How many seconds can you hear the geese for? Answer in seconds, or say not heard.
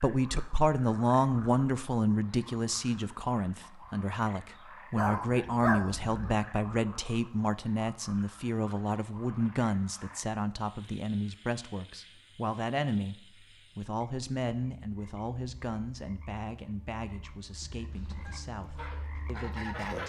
2 s.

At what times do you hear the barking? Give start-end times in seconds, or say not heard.
5.0-6.3.